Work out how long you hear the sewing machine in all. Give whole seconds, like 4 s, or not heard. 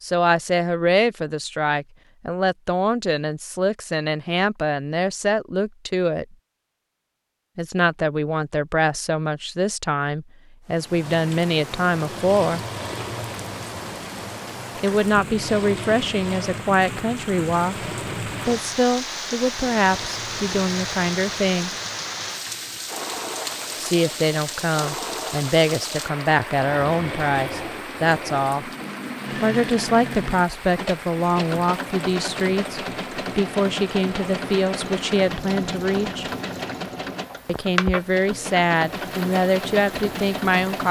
30 s.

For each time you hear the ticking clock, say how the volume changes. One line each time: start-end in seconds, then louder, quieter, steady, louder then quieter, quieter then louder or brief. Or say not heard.
not heard.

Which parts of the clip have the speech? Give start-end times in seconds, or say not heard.
0.0-6.2, 7.5-12.6, 14.8-21.7, 23.8-28.7, 29.4-36.3, 37.5-40.8.